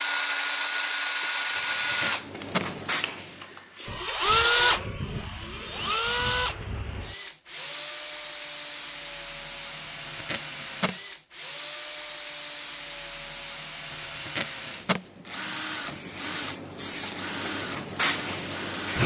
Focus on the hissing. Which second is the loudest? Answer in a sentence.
The loudest moment of the hissing is at 19 seconds.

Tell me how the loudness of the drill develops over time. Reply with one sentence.
The loudness of the drill goes down.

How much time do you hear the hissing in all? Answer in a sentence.
The hissing can be heard for 7 seconds in total.